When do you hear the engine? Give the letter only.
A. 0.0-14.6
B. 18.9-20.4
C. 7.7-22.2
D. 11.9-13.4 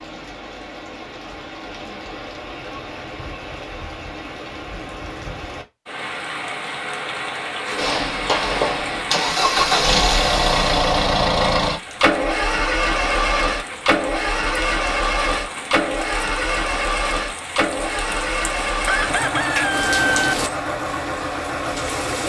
C.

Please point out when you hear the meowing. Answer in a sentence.
You can't hear the meowing here.